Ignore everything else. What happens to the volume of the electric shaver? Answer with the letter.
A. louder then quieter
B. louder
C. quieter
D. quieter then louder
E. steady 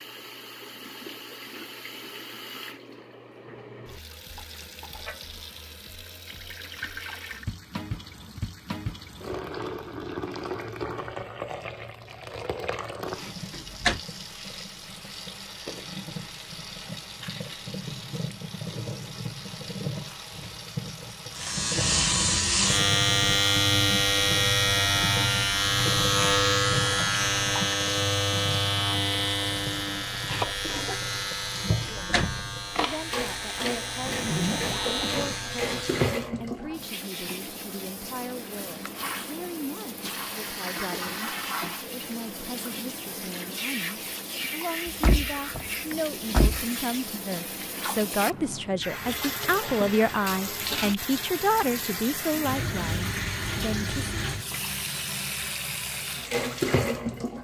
C.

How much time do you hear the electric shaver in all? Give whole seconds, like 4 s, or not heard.
15 s.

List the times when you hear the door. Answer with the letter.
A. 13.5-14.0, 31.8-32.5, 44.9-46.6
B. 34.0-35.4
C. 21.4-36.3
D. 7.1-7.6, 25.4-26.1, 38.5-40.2
A.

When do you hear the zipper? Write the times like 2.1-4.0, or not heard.
34.0-35.4.